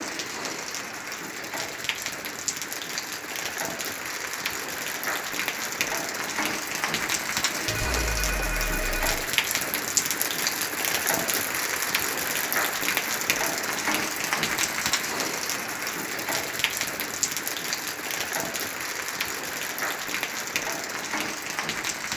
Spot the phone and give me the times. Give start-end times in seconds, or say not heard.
7.7-9.1.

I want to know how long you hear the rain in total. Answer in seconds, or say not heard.
22 s.